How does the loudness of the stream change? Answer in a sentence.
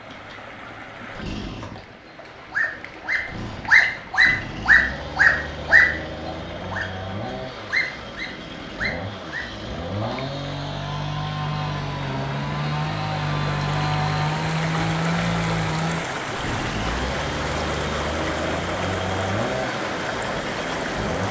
The loudness of the stream goes up.